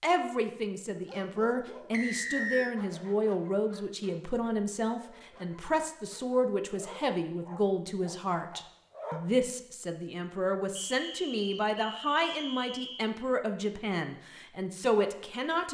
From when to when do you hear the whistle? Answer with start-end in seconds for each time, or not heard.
1.9-2.8, 10.8-13.2.